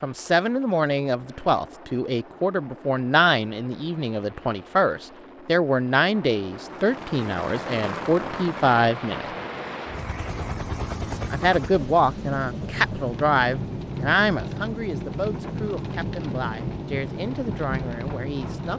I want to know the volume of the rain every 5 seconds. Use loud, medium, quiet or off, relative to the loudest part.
off, loud, loud, loud.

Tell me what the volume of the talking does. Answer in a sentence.
The loudness of the talking goes down.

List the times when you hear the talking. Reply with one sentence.
You can hear the talking from 0.0 to 9.3 s and from 11.3 to 18.7 s.